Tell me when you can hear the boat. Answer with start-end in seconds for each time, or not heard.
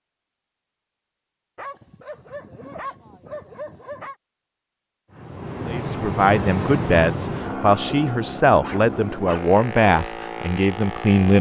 5.1-11.3.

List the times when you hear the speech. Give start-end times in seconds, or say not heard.
5.7-11.3.